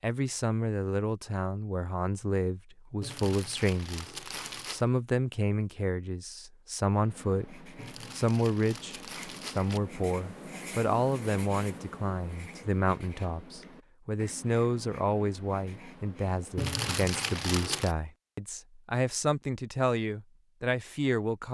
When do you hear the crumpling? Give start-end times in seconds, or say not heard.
3.0-4.8, 7.8-9.8, 16.6-17.9.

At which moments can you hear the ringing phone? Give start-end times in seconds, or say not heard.
not heard.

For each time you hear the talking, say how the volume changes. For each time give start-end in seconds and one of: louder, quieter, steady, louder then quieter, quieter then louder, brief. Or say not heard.
0.0-21.5 steady.